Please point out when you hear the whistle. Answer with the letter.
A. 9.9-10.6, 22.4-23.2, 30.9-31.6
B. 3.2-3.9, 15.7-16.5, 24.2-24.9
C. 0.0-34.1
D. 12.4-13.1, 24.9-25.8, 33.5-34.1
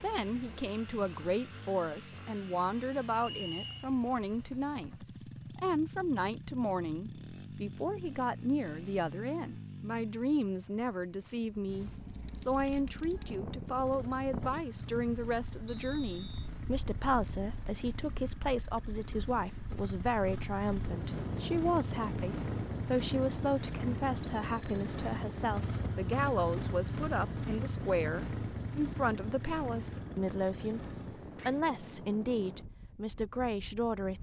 B.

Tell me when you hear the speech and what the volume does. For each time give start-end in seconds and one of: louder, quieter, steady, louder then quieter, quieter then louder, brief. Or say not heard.
0.0-34.1 steady.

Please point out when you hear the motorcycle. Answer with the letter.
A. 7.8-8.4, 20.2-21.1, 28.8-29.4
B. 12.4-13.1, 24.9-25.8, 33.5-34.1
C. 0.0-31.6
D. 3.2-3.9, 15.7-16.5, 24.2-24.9
C.